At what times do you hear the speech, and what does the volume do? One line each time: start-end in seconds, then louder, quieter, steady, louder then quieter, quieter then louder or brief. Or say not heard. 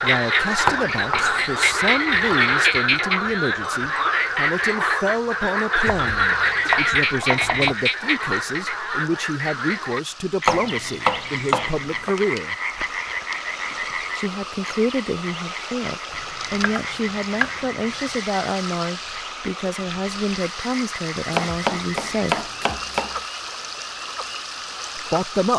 0.0-12.6 steady
14.2-22.5 steady
24.9-25.5 brief.